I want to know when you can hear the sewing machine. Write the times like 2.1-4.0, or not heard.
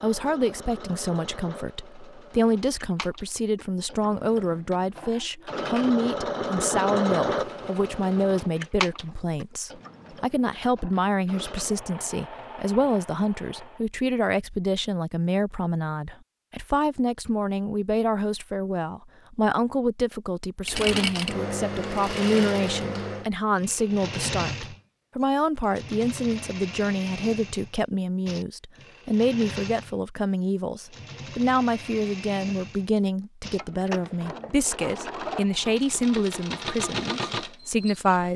0.0-13.8, 20.6-38.3.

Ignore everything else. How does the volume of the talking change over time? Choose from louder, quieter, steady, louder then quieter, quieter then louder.
steady.